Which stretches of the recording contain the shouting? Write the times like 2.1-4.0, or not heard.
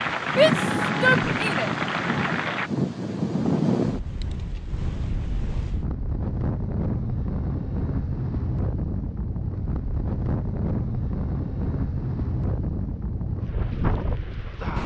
0.2-1.7.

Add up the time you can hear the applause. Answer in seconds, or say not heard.
3 s.